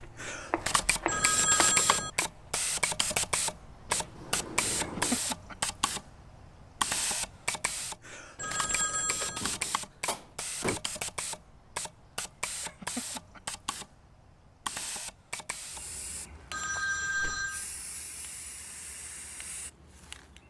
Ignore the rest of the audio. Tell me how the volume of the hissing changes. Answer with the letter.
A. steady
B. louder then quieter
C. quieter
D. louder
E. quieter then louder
C.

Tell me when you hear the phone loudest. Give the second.
2 s.